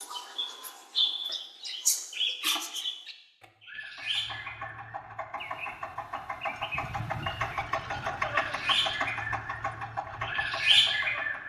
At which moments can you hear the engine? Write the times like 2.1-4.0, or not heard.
3.8-11.4.